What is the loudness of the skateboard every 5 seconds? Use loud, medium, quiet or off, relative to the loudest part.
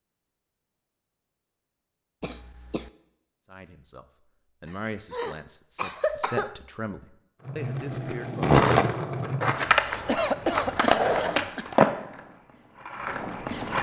off, loud, loud.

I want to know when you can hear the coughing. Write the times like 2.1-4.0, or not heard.
2.2-2.9, 5.1-6.5, 10.1-11.7.